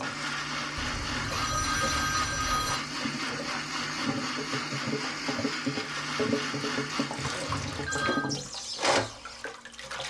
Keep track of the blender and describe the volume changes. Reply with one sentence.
The loudness of the blender stays about the same.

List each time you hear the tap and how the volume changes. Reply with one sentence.
You can hear the tap from 0.0 to 10.0 s, getting louder.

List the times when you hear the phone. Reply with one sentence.
The phone can be heard from 0.8 to 2.8 s and from 7.5 to 8.3 s.